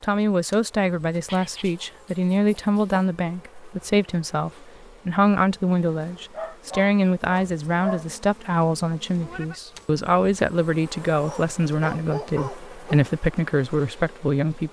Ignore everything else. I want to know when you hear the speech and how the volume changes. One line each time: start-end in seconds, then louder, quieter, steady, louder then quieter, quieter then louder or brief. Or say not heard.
0.0-14.6 steady.